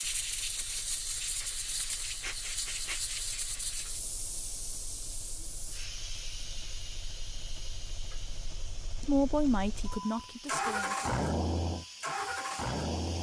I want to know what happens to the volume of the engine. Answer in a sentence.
The volume of the engine goes up.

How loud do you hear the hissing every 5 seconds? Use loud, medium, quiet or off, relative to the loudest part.
loud, medium, medium.